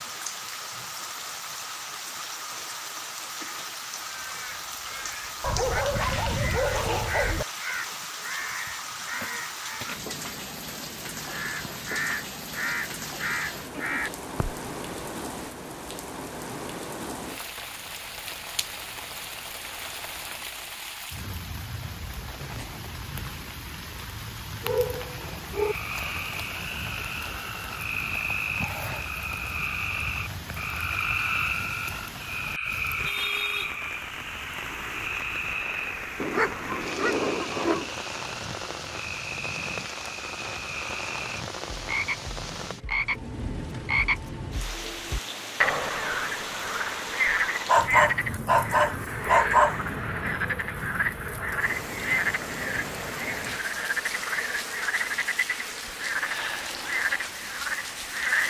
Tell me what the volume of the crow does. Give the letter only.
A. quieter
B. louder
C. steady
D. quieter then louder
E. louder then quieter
B.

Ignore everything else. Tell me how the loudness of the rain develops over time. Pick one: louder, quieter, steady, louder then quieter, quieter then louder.
steady.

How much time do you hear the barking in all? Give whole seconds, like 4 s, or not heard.
7 s.